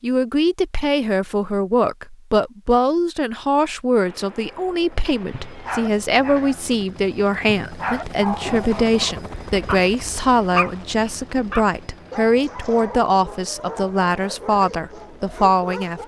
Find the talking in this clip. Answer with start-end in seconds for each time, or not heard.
0.0-16.0.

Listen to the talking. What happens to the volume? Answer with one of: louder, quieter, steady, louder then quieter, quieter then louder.
steady.